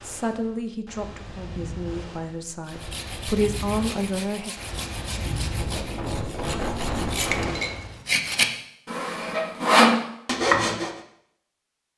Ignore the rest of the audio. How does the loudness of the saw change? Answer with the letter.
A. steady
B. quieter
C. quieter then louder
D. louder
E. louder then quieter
D.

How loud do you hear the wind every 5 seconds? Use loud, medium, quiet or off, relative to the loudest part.
medium, loud, off.